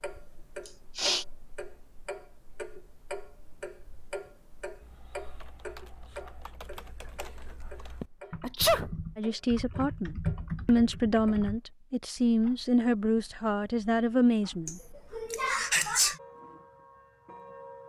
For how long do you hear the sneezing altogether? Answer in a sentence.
You can hear the sneezing for 3 seconds altogether.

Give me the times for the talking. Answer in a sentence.
The talking can be heard from 9.2 to 14.8 s.